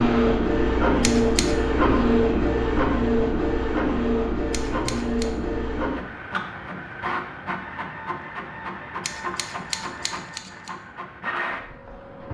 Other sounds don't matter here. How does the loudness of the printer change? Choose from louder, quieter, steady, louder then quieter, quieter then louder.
quieter.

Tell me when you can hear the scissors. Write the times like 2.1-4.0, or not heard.
1.0-1.6, 4.5-5.2, 9.0-10.7.